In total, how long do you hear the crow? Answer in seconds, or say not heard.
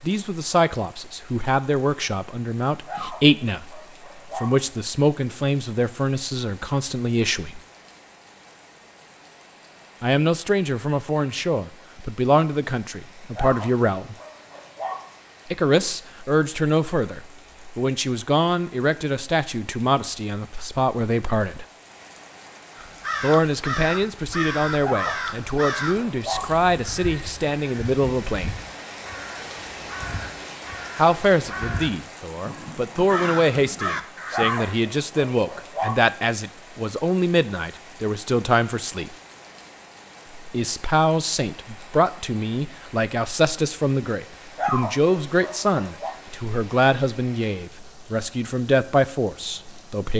12 s.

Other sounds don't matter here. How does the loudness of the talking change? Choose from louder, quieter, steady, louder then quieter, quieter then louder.
steady.